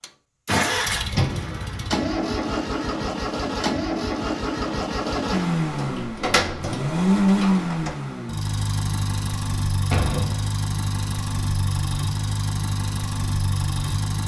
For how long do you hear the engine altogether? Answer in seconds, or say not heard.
14 s.